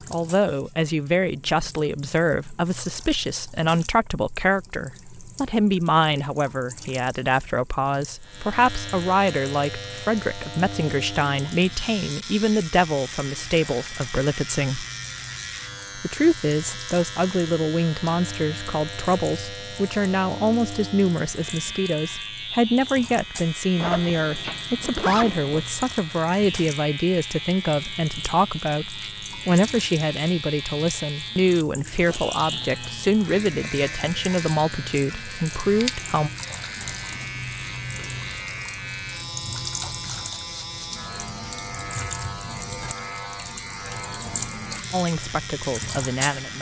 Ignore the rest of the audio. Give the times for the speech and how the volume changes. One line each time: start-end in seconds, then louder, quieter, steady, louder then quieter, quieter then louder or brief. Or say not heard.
0.1-14.8 steady
15.9-36.3 steady
44.9-46.5 brief.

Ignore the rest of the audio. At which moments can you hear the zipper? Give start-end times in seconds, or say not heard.
23.8-25.6.